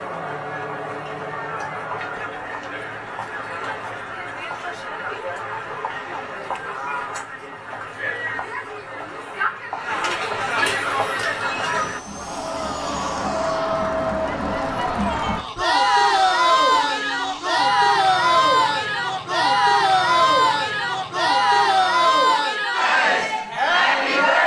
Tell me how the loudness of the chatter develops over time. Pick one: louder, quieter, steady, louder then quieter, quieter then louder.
louder.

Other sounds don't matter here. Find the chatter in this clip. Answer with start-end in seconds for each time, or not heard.
0.0-24.4.